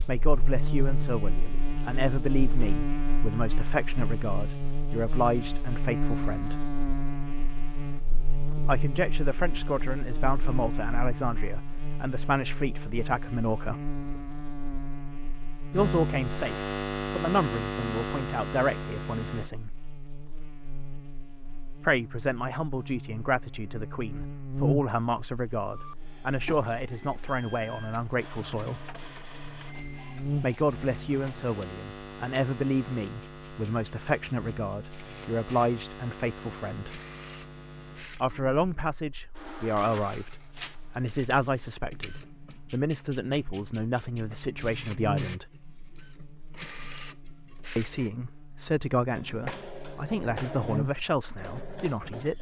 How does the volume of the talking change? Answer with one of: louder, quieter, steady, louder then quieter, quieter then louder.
steady.